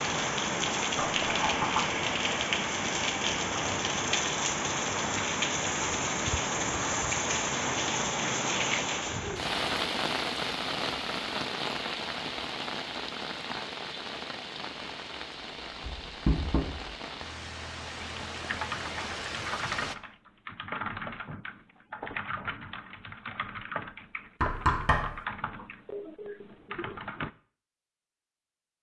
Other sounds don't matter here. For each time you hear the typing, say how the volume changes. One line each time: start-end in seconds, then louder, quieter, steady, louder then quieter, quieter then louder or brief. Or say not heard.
18.0-27.3 steady.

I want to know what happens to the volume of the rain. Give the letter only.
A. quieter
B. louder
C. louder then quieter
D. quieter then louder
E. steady
A.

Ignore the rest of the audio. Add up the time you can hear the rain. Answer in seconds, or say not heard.
20 s.